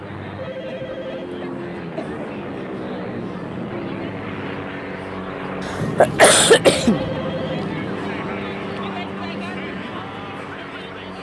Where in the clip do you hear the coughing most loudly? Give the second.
6 s.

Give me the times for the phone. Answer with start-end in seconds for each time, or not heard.
0.3-1.3, 6.9-7.7.